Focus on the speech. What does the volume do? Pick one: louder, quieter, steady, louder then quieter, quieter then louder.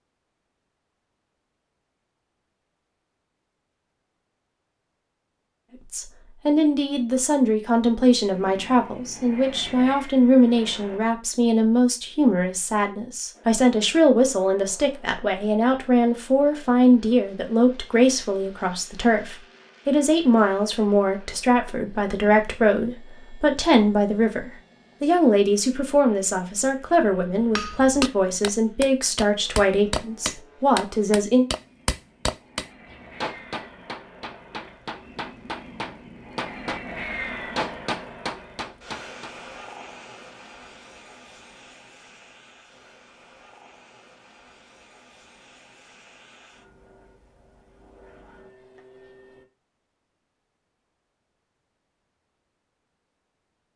steady.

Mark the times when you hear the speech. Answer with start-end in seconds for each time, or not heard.
5.9-31.4.